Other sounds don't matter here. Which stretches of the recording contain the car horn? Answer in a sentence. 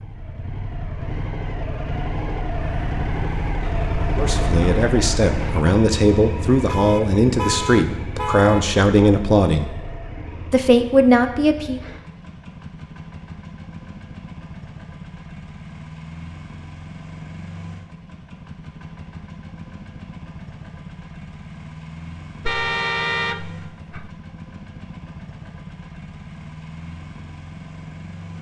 You can hear the car horn from 6.7 to 8.7 s and from 22.4 to 24.1 s.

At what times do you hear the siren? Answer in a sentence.
The siren can't be heard in this clip.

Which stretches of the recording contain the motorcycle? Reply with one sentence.
You can hear the motorcycle from 0.0 to 28.3 s.